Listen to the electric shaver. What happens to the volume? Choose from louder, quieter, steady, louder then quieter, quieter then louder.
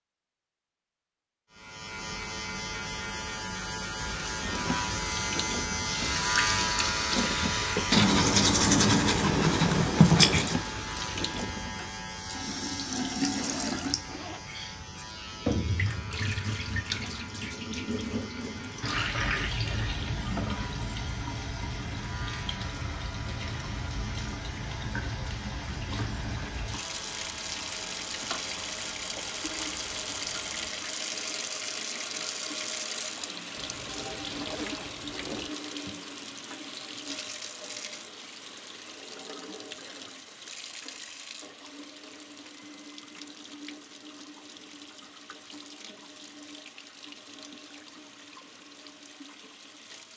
quieter.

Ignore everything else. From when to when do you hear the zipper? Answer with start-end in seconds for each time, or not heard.
13.2-14.9, 33.5-35.5.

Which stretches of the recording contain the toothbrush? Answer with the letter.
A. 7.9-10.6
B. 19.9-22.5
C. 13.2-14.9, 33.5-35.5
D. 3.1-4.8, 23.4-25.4
A.